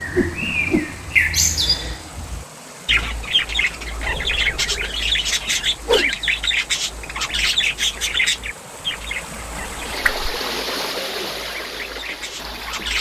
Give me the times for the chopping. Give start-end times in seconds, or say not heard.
not heard.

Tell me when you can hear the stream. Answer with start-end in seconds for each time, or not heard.
0.0-12.9.